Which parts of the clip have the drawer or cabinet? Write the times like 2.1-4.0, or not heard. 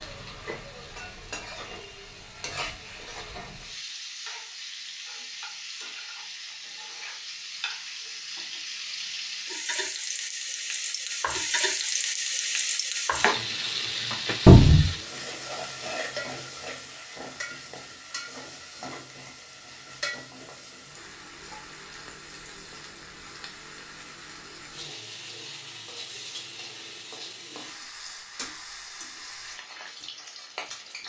14.4-14.8.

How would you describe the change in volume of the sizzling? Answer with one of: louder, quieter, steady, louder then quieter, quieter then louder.
louder then quieter.